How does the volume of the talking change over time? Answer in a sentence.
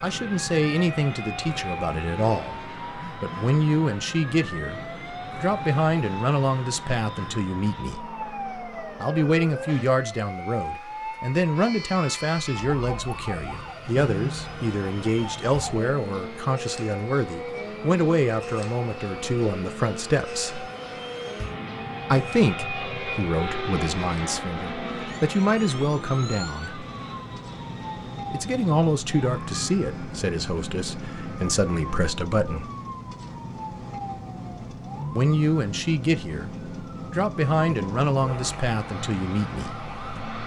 The loudness of the talking stays about the same.